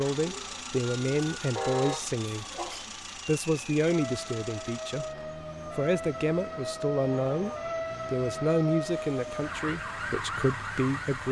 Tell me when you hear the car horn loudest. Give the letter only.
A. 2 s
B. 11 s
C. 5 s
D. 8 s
A.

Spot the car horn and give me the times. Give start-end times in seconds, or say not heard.
1.5-2.1, 7.2-7.7.